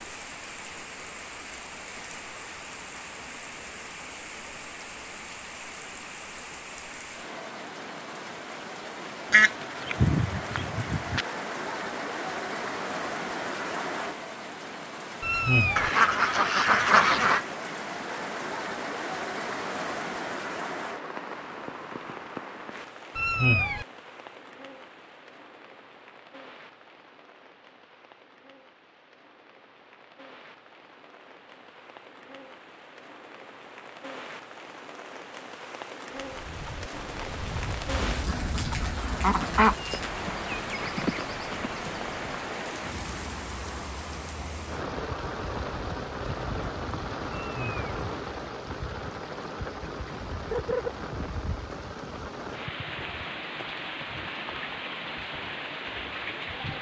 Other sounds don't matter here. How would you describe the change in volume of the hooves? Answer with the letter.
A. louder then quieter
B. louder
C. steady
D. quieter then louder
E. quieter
B.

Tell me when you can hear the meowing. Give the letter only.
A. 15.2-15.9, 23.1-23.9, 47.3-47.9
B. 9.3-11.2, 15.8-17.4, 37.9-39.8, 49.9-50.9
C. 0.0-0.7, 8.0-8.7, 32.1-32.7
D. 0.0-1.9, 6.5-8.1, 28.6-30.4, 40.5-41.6
A.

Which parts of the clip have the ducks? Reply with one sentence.
The ducks can be heard from 9.3 to 11.2 s, from 15.8 to 17.4 s, from 37.9 to 39.8 s and from 49.9 to 50.9 s.